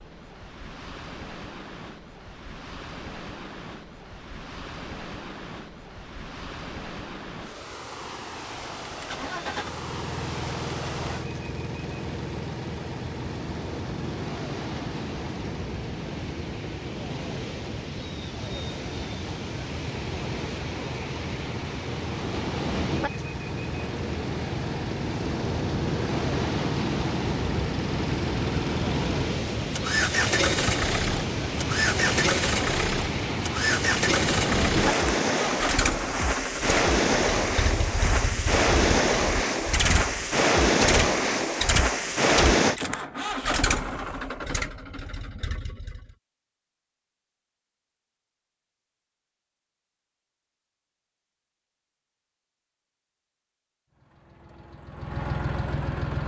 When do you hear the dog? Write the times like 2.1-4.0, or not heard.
not heard.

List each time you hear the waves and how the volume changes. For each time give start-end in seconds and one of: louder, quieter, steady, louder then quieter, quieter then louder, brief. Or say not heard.
0.0-42.8 louder.